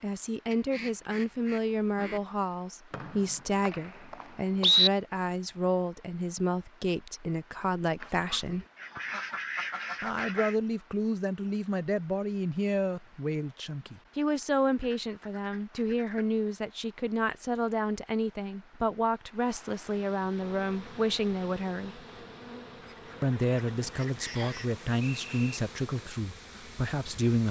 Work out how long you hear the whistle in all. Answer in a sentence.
The whistle can be heard for 3 seconds in total.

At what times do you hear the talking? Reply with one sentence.
The talking can be heard from 0.0 to 8.7 s, from 10.0 to 22.0 s and from 23.2 to 27.4 s.